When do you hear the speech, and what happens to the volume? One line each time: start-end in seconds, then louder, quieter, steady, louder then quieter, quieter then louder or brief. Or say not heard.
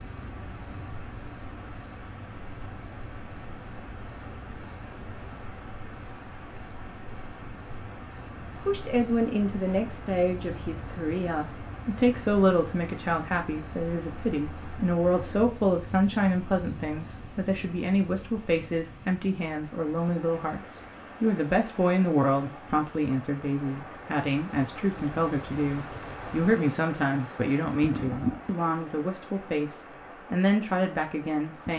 8.6-31.7 steady.